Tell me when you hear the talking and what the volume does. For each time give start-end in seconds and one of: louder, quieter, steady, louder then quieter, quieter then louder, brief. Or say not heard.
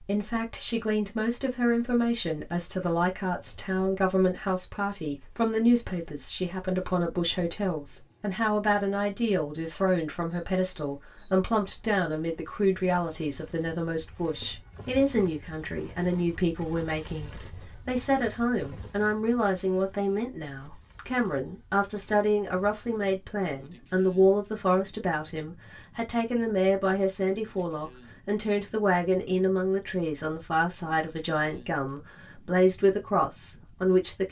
0.0-34.2 steady.